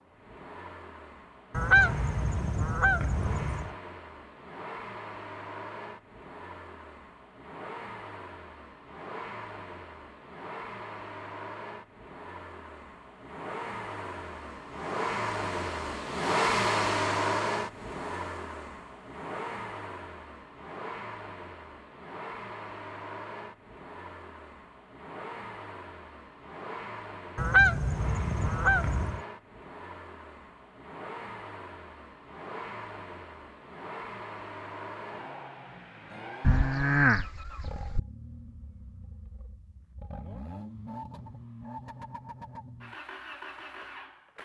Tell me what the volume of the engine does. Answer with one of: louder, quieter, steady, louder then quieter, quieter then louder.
louder then quieter.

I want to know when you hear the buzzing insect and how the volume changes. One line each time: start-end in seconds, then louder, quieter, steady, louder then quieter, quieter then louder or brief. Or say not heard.
not heard.